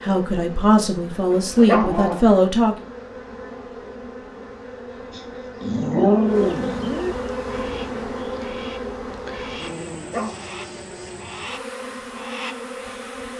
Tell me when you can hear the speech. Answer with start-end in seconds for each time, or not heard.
0.0-2.9.